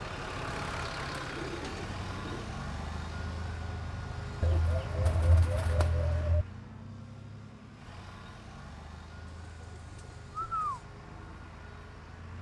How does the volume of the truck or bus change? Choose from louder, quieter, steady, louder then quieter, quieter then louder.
quieter.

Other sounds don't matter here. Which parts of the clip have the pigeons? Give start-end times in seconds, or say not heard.
0.5-2.5, 4.4-6.5, 9.3-10.8.